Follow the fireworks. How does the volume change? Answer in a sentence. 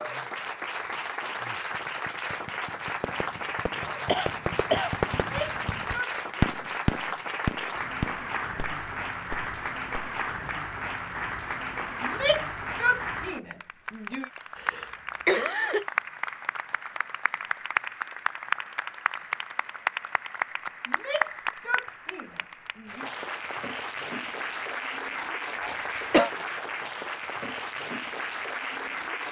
The volume of the fireworks goes up, then down.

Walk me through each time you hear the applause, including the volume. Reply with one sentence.
You can hear the applause from 0.0 to 29.2 s, at a steady volume.